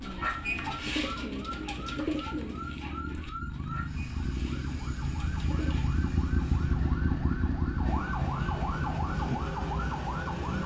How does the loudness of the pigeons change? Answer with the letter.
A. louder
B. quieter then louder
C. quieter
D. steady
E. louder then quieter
C.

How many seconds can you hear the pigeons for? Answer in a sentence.
You can hear the pigeons for 6 seconds altogether.